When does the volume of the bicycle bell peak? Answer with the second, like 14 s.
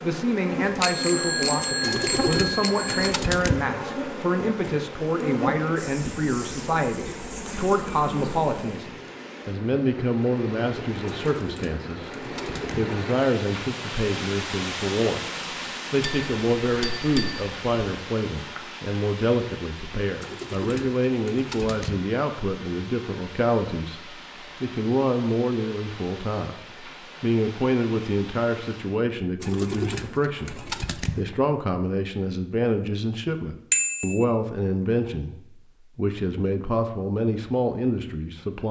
34 s.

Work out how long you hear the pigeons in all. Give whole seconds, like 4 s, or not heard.
7 s.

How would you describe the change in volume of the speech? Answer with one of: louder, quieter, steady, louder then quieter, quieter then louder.
steady.